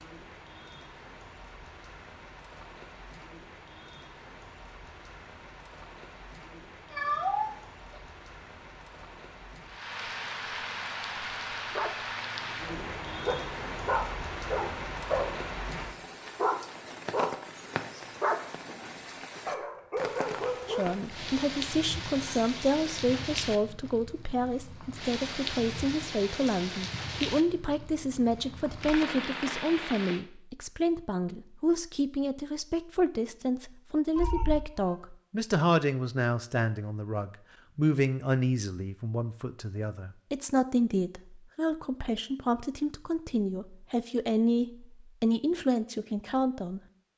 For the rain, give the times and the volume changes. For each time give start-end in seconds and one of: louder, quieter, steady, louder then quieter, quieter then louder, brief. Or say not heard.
0.0-30.2 louder.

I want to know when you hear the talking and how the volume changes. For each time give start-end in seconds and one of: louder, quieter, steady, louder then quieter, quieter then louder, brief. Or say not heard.
20.6-46.8 steady.